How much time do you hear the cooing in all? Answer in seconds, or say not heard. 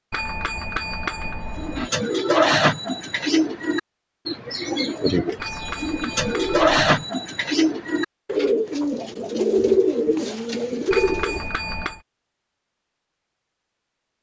10 s.